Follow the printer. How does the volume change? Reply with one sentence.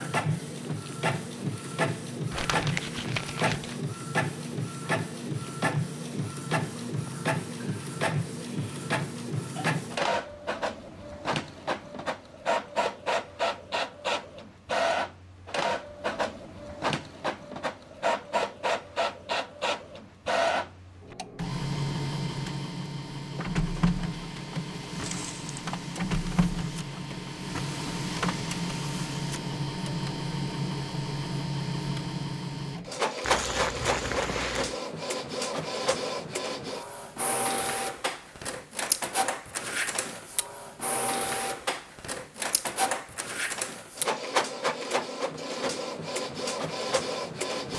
The loudness of the printer stays about the same.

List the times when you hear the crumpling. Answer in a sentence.
You can hear the crumpling from 2.3 to 3.8 s, from 25.0 to 25.5 s and from 33.2 to 34.8 s.